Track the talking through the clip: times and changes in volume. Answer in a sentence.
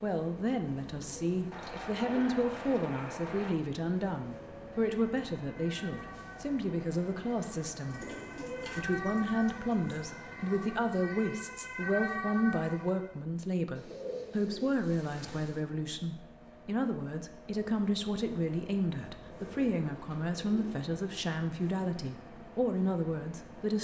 The talking can be heard from 0.0 to 8.1 s, at a steady volume; and from 8.8 to 23.7 s, at a steady volume.